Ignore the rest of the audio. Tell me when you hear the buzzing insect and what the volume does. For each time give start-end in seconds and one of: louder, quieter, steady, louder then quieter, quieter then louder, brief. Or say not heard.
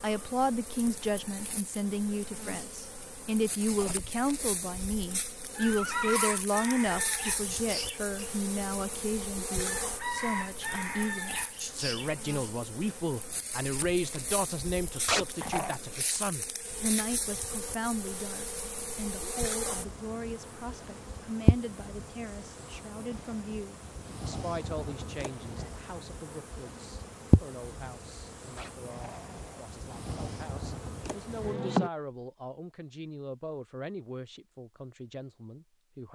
0.0-31.9 louder.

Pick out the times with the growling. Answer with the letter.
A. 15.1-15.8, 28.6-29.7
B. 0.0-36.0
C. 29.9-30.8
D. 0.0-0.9
A.